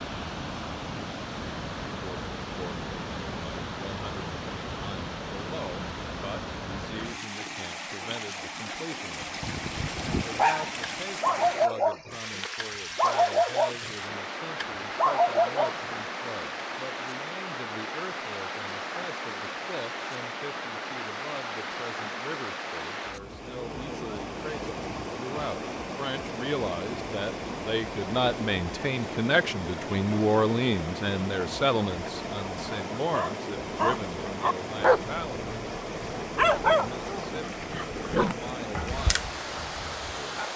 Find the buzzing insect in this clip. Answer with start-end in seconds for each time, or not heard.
not heard.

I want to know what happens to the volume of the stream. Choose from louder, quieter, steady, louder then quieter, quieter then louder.
steady.